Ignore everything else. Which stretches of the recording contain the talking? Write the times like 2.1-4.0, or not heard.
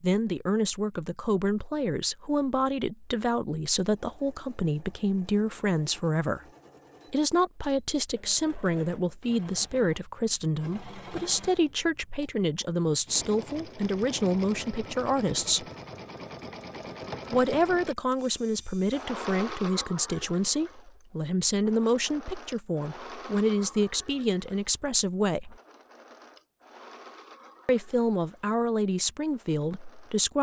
0.0-6.4, 7.1-15.7, 17.3-25.6, 27.6-30.3.